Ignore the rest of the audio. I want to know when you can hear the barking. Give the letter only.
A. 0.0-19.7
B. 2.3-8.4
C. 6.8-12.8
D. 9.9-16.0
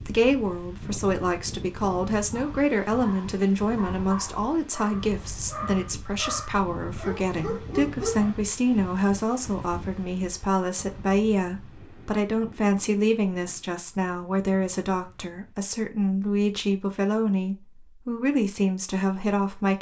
B.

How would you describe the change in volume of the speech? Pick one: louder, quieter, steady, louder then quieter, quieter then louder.
steady.